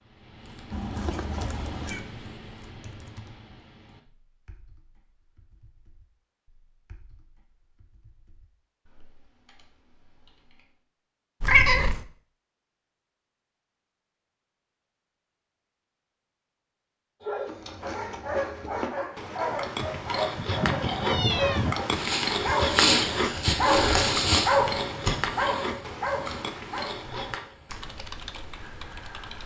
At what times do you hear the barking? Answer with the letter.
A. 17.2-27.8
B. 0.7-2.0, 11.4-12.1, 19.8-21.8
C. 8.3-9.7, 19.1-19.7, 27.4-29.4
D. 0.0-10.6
A.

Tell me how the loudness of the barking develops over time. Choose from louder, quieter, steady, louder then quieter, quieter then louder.
louder then quieter.